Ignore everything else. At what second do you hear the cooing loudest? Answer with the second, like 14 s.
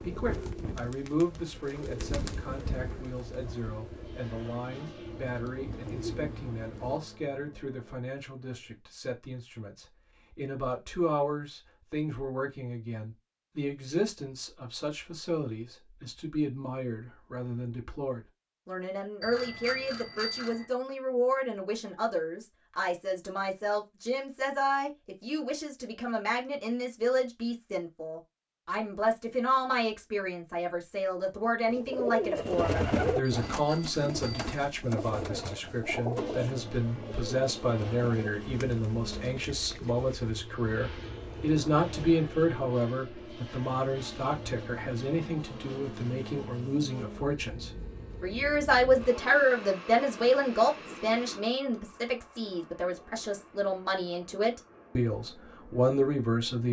33 s.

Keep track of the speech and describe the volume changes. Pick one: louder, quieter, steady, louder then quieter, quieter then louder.
louder.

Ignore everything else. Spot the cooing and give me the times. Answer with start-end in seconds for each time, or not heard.
0.0-7.0, 31.7-42.2.